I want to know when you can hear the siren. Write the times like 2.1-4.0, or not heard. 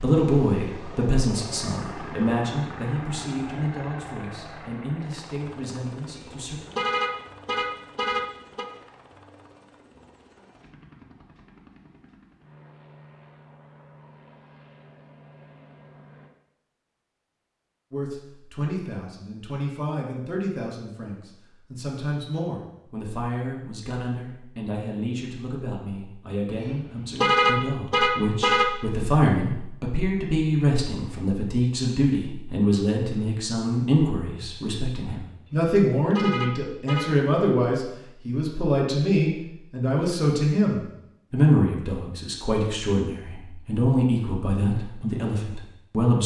not heard.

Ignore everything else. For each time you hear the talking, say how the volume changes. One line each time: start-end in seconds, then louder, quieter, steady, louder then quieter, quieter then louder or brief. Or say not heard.
0.0-6.6 quieter
17.9-46.2 louder.